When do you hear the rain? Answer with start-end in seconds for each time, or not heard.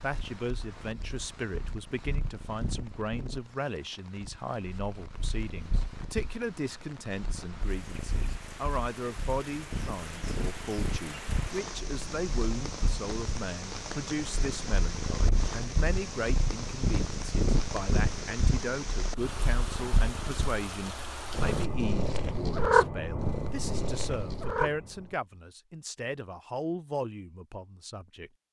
0.0-21.7.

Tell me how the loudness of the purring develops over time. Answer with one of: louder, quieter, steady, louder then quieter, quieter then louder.
louder.